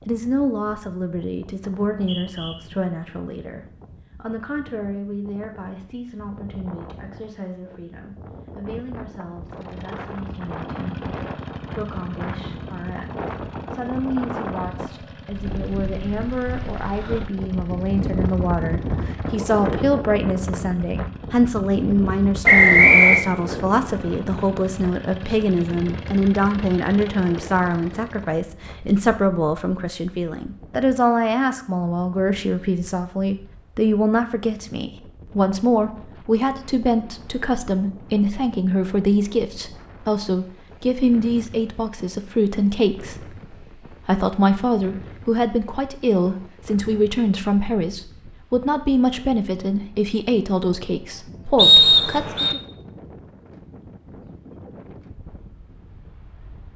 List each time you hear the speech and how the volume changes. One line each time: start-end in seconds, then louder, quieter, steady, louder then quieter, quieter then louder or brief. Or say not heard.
0.1-52.6 louder.